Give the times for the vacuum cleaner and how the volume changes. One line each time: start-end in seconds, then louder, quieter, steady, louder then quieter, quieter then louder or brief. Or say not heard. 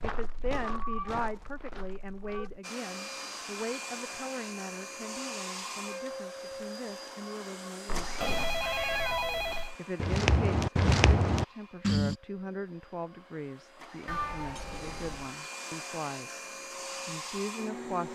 2.6-18.0 quieter then louder.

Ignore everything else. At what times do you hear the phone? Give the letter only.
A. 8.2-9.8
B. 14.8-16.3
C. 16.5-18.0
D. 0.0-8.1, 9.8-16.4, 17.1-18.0
A.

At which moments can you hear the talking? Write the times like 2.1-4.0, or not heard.
0.0-8.1, 9.8-16.4, 17.1-18.0.